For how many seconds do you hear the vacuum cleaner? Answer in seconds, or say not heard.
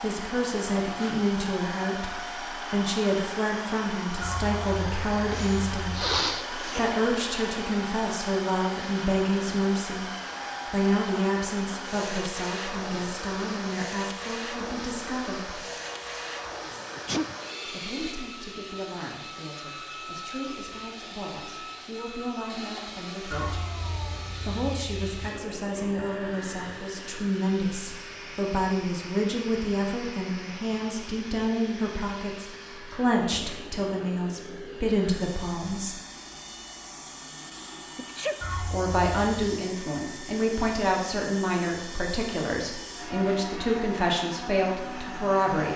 46 s.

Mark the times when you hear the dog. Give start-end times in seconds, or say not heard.
not heard.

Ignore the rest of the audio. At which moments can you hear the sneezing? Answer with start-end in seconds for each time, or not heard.
5.3-6.9, 16.9-17.4, 37.5-38.4.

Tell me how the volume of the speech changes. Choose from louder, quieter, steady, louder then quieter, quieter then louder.
quieter then louder.